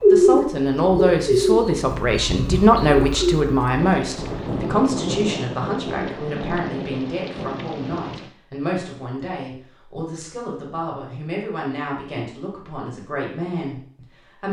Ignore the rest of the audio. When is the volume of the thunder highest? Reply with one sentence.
The volume of the thunder peaks at 5 seconds.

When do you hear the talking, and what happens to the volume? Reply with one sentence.
You can hear the talking from 0.1 to 14.4 s, getting quieter.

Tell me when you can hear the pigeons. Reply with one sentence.
The pigeons can be heard from 0.0 to 4.7 s.